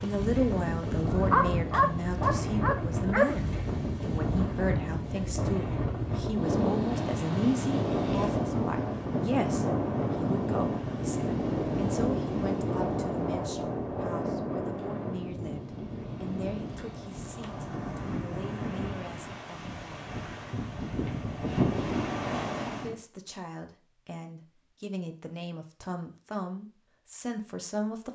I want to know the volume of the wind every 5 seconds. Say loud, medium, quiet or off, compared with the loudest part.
loud, loud, loud, medium, loud, off.